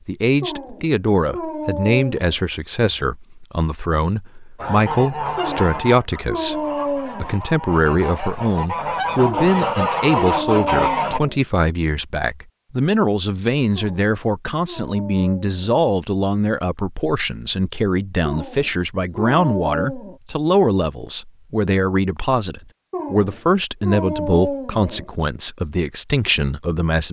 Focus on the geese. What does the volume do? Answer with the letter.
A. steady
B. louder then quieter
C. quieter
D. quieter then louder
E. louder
D.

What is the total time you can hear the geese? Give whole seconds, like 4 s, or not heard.
7 s.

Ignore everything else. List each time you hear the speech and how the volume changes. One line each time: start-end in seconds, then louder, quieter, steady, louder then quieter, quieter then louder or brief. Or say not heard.
0.1-27.0 steady.